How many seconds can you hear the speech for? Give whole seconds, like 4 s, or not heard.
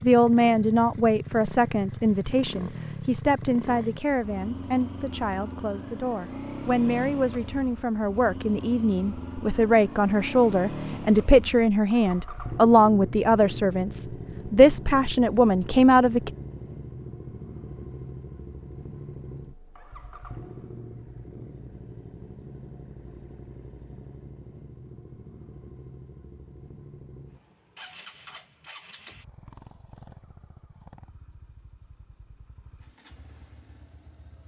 16 s.